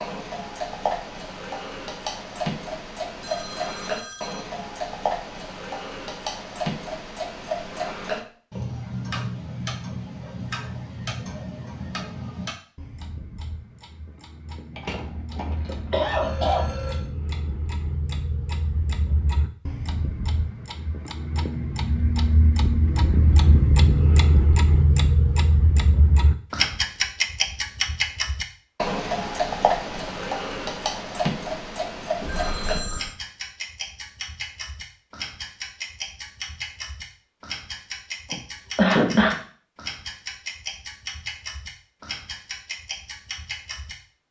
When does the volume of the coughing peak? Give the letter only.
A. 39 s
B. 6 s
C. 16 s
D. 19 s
A.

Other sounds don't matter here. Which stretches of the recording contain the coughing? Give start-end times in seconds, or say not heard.
14.8-16.6, 38.3-39.4.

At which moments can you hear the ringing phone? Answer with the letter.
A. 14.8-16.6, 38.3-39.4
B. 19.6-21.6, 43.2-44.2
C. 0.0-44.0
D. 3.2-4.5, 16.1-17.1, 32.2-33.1
D.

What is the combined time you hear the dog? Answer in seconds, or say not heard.
not heard.